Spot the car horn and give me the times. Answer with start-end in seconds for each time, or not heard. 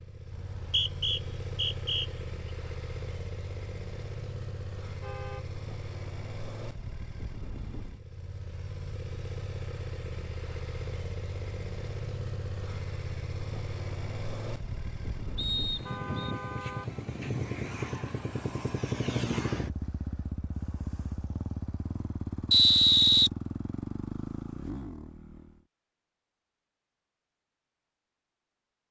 4.8-5.5, 15.8-16.9.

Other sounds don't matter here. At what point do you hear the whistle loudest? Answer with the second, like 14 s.
23 s.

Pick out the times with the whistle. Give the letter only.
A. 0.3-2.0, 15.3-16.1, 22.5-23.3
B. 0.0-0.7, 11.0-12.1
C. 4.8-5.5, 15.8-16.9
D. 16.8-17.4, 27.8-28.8
A.